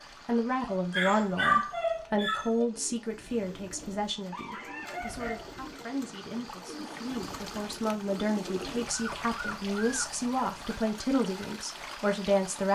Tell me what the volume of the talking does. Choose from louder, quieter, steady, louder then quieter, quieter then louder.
quieter then louder.